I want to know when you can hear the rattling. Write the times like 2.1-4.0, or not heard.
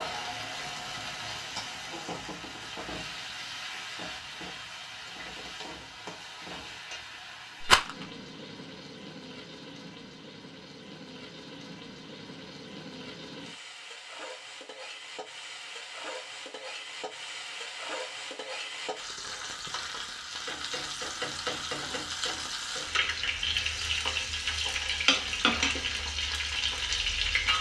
7.6-8.1.